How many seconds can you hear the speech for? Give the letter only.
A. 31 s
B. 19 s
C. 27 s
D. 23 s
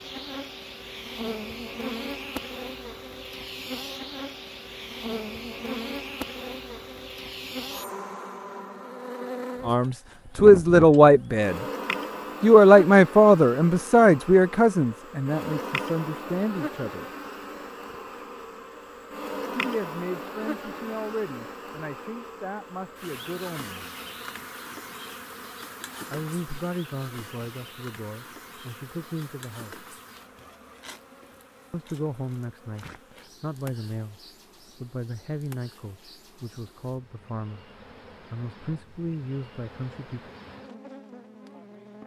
D.